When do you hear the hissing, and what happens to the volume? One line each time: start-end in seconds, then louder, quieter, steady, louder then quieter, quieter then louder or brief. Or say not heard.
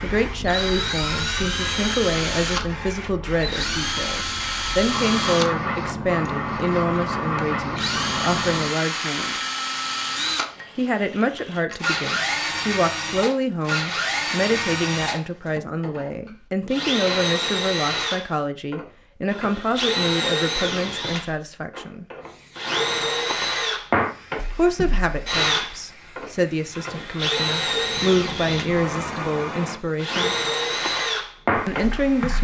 0.0-11.7 louder then quieter
22.2-32.3 quieter then louder.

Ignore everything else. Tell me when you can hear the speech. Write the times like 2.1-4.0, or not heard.
0.0-9.4, 10.8-22.1, 24.6-30.4, 31.6-32.3.